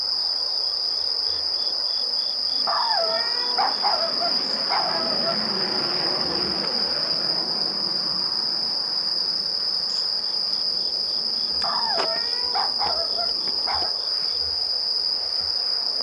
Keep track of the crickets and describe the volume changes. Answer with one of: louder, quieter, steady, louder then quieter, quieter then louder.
steady.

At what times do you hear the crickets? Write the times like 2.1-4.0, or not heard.
0.0-15.9.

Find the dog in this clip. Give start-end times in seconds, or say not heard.
2.6-5.4, 11.6-13.9.